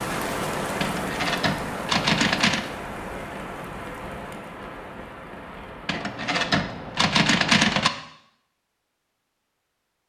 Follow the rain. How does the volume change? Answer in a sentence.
The volume of the rain goes down.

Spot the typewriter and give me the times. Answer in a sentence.
You can hear the typewriter from 0.8 to 2.6 s and from 5.8 to 7.9 s.